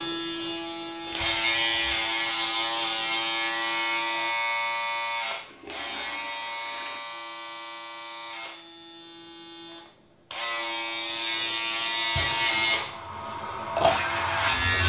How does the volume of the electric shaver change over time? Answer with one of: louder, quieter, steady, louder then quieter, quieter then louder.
quieter then louder.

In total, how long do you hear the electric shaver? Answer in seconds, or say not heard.
15 s.